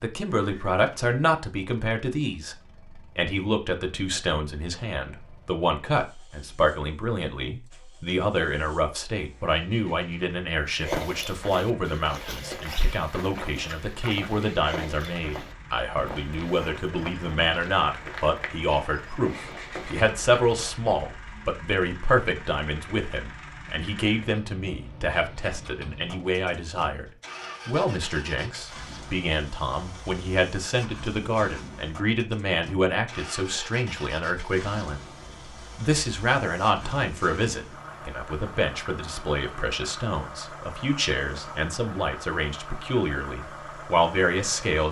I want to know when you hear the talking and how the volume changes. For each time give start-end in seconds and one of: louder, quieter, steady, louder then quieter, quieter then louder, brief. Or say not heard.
0.0-44.8 steady.